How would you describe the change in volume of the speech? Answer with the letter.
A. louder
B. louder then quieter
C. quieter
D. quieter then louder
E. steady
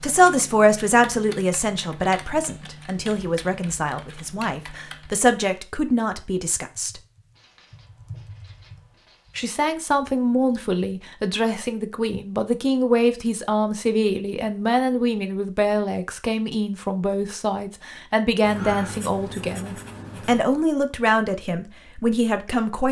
E.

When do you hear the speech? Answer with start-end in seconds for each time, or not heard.
0.0-7.0, 9.3-22.8.